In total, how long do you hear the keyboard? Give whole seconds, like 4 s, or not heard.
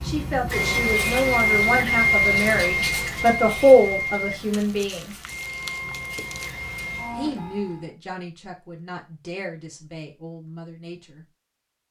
not heard.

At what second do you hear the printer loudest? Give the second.
2 s.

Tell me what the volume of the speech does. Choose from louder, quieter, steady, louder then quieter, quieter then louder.
louder then quieter.